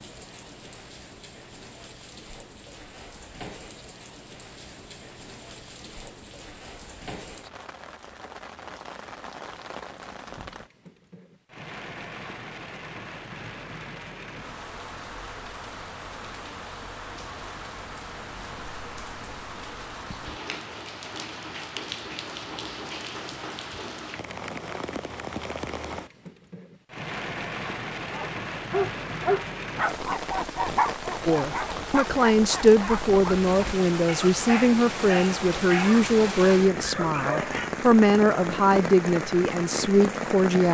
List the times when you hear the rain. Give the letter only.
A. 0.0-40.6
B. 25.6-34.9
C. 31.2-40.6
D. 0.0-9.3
A.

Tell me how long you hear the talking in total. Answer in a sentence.
You can hear the talking for 9 seconds altogether.